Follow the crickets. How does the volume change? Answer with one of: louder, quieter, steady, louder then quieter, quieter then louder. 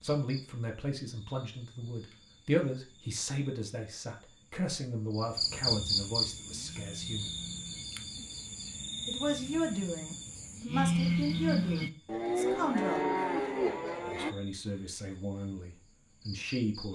louder then quieter.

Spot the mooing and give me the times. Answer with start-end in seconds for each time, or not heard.
6.4-14.3.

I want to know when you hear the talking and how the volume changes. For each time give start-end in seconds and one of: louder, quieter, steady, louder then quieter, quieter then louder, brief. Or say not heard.
0.0-7.3 louder then quieter
9.1-13.1 quieter then louder
14.1-16.9 brief.